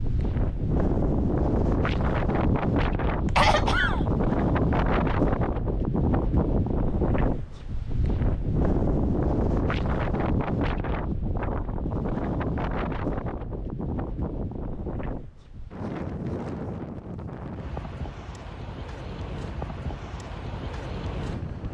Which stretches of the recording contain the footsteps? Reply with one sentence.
You can't hear the footsteps here.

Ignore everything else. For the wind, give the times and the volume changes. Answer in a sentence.
You can hear the wind from 0.0 to 21.7 s, getting quieter.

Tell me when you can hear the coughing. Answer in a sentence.
The coughing can be heard from 3.2 to 4.0 s.